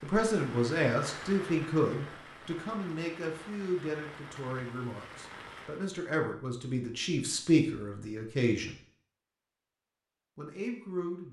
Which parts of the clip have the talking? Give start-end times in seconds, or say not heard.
0.0-8.8, 10.3-11.2.